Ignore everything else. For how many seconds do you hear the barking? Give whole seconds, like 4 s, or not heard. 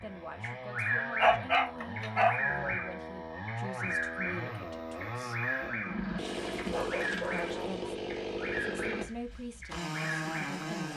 3 s.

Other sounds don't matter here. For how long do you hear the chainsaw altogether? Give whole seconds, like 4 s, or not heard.
11 s.